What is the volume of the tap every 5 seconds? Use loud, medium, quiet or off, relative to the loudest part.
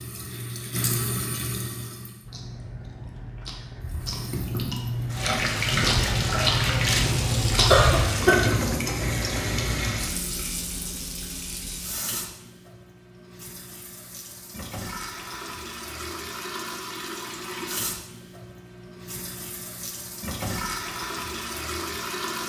medium, loud, medium, medium, medium.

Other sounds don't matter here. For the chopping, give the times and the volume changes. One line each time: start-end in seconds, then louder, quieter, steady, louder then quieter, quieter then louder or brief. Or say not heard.
not heard.